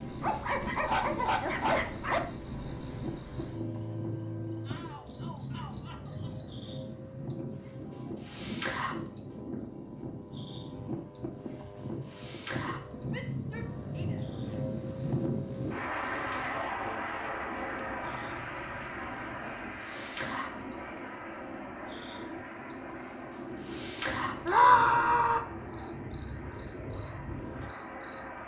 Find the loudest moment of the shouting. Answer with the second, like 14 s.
25 s.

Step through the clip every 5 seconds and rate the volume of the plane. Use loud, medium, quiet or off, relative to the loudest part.
medium, medium, loud, loud, medium, medium.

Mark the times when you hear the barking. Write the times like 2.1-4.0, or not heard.
0.2-2.2, 18.1-19.6.